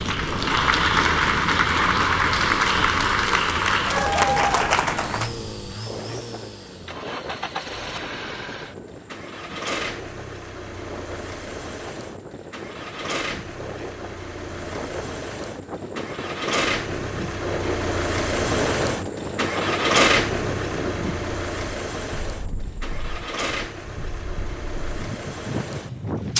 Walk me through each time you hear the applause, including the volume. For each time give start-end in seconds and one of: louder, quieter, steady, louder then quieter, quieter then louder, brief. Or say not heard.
0.0-5.3 steady.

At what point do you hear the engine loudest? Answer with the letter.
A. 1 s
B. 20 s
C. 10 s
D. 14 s
B.